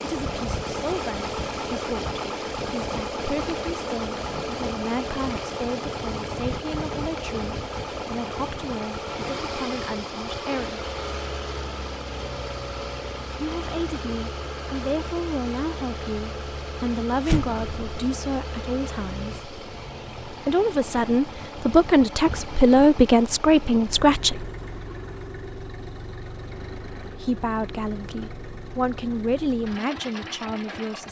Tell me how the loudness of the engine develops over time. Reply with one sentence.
The loudness of the engine goes down.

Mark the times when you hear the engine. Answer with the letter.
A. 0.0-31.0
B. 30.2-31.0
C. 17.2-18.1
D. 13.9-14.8
A.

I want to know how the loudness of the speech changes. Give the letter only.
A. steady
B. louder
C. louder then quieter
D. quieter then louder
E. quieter
C.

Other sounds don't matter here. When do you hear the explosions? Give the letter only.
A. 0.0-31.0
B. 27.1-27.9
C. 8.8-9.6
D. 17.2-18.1
D.